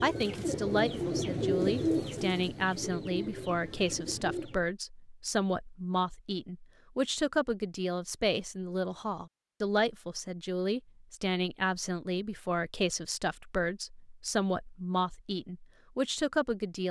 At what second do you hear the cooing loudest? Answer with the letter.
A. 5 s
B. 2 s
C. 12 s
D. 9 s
B.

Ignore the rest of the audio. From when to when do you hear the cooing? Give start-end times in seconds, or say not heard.
0.0-4.7.